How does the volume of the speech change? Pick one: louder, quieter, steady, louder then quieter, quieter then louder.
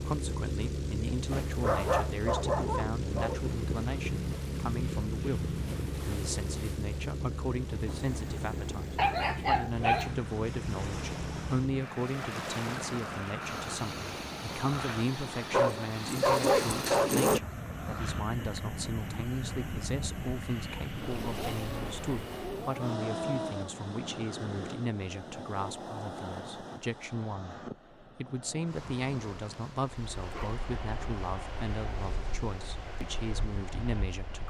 steady.